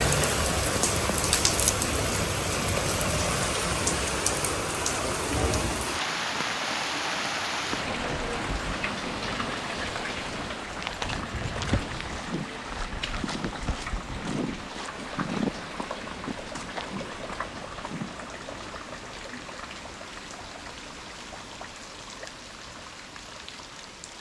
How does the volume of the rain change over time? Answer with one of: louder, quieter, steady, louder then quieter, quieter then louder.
quieter.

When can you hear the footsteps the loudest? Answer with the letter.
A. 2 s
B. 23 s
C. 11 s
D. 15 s
D.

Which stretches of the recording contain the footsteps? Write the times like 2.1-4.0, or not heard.
10.8-18.3.